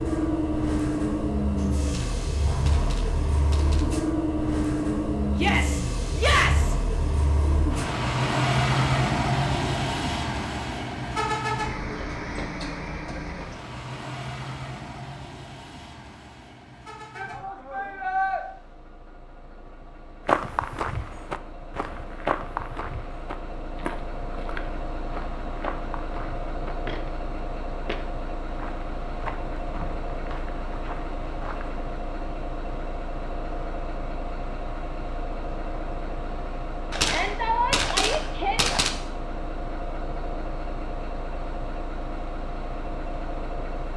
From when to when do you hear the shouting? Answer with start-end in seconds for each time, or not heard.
5.3-6.8, 17.1-18.4, 37.0-38.8.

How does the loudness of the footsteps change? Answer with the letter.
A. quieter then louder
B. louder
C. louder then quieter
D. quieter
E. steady
D.